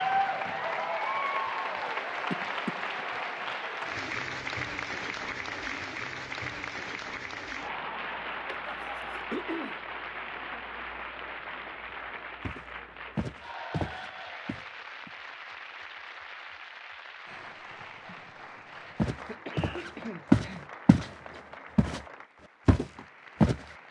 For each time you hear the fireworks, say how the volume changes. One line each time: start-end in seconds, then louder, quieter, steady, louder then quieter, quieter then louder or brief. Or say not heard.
not heard.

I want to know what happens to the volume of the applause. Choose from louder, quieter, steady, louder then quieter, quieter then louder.
quieter.